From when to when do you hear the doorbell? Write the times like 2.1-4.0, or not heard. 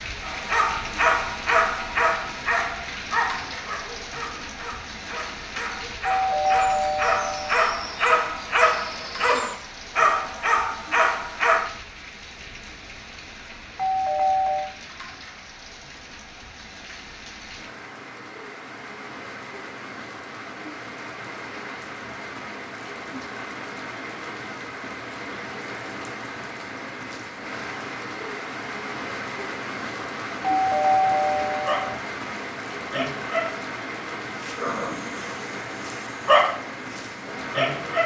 6.0-7.5, 13.8-14.7, 30.6-31.9.